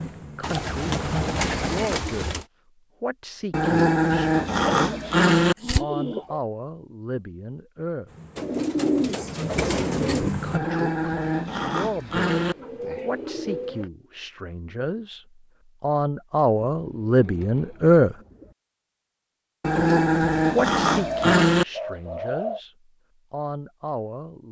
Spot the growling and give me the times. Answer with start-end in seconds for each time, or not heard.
3.5-5.5, 10.5-12.6, 19.6-21.6.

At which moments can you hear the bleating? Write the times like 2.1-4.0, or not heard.
not heard.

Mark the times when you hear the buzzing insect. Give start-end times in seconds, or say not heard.
0.0-1.9, 8.1-10.6.